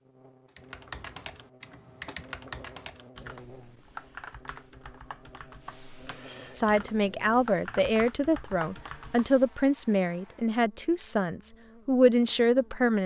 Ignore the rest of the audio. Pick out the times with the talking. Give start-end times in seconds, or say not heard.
6.5-13.0.